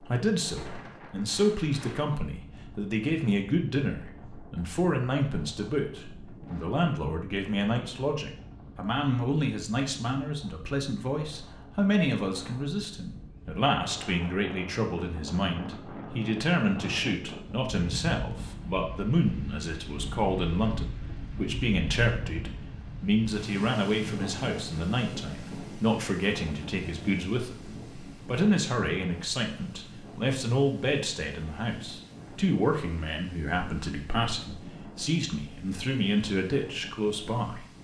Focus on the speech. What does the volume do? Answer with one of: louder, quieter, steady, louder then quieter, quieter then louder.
steady.